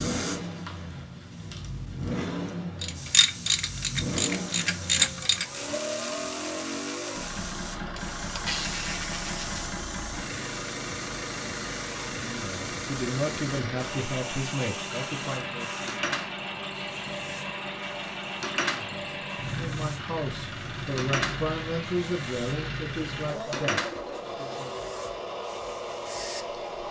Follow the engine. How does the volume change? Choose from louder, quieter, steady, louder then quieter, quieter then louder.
steady.